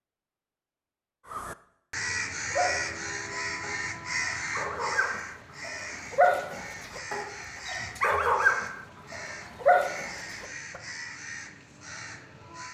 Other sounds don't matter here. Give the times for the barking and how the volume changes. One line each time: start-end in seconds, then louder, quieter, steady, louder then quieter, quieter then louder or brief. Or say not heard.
2.5-10.8 louder.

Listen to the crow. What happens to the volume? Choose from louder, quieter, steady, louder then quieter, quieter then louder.
quieter.